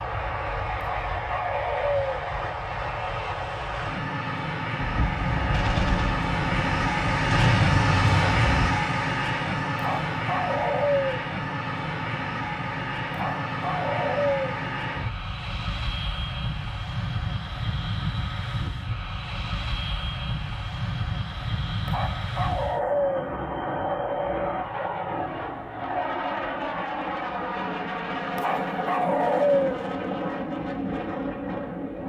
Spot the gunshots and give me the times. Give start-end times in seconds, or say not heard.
4.8-8.8.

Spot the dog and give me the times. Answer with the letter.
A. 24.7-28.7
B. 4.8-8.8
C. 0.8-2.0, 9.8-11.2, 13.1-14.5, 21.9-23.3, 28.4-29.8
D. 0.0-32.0
C.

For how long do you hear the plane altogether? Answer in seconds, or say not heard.
32 s.